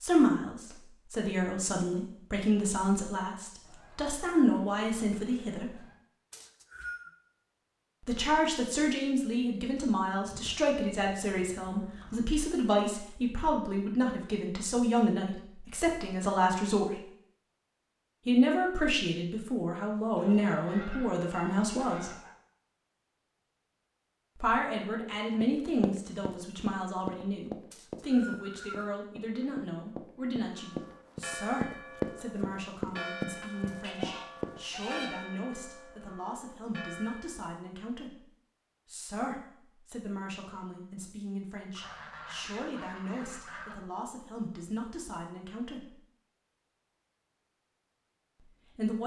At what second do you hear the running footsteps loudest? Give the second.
32 s.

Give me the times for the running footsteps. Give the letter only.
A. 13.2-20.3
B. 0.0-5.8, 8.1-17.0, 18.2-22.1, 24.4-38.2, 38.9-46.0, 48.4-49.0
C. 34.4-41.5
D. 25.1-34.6
D.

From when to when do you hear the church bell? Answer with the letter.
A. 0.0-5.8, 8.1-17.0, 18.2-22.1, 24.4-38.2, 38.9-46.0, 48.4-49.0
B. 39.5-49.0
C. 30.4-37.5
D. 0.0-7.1
C.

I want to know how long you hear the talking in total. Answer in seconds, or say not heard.
40 s.